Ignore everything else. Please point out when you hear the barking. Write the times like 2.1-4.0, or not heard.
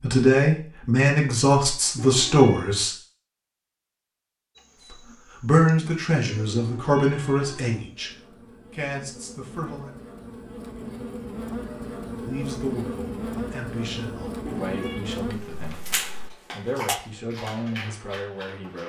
15.7-18.8.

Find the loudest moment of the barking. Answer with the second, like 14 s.
17 s.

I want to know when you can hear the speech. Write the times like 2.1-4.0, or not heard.
0.0-3.0, 4.9-9.9, 12.2-18.8.